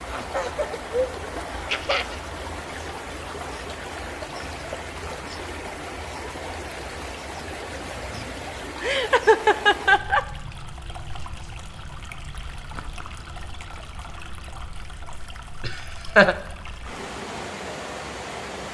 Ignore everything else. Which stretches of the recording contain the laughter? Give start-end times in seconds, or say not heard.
0.1-2.2, 8.8-10.2, 15.6-16.4.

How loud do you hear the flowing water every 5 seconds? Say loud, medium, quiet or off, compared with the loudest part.
loud, loud, medium, loud.